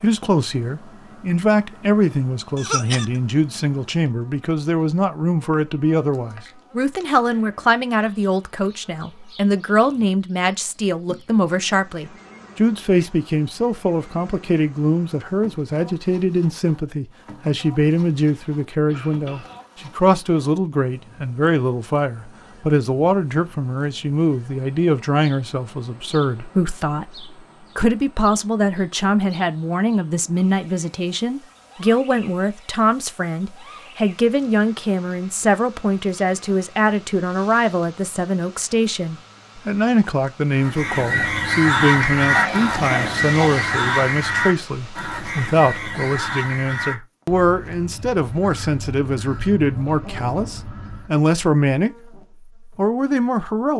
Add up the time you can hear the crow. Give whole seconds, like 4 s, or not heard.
11 s.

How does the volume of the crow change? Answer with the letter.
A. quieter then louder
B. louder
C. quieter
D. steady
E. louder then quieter
C.